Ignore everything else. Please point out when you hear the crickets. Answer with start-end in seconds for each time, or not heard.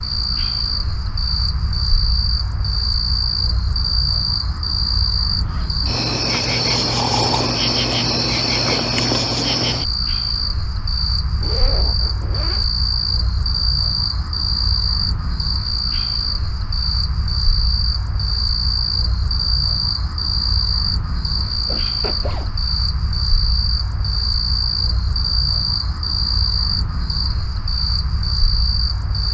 0.0-29.3.